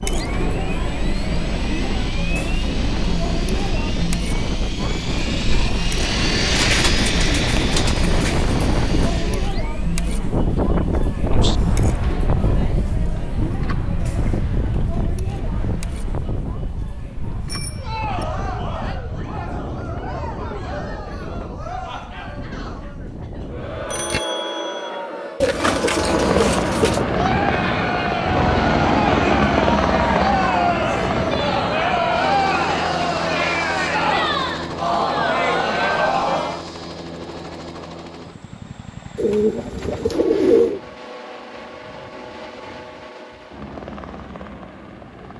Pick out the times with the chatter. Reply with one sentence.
The chatter can be heard from 0.0 to 36.6 s.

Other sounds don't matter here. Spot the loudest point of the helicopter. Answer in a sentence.
The volume of the helicopter peaks at 29 seconds.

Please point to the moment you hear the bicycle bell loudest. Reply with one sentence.
The volume of the bicycle bell peaks at 24 seconds.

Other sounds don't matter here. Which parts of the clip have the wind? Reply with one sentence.
You can hear the wind from 0.1 to 24.1 s.